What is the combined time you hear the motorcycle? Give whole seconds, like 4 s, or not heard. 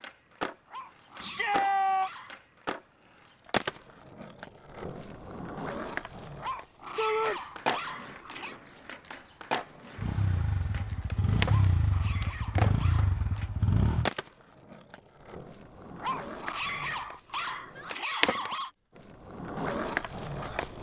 4 s.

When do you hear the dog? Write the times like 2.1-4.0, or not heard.
0.7-2.4, 6.3-8.6, 11.4-13.5, 15.9-18.7.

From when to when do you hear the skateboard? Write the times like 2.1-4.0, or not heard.
0.0-20.7.